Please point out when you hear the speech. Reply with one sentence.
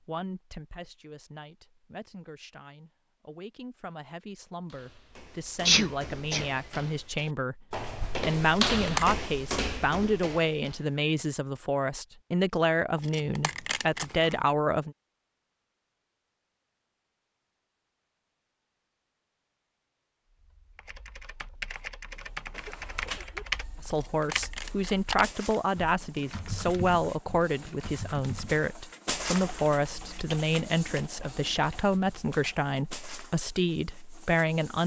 You can hear the speech from 0.1 to 14.9 s and from 23.8 to 34.8 s.